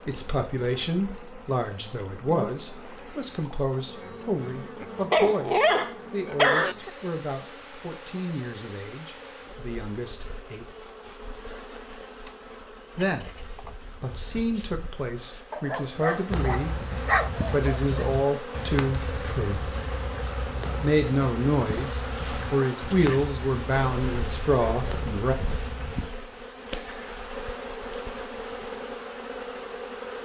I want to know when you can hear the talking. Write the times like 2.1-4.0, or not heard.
0.1-10.8, 12.9-19.8, 20.8-25.4.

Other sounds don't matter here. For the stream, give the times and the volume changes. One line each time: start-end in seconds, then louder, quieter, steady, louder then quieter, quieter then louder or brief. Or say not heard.
not heard.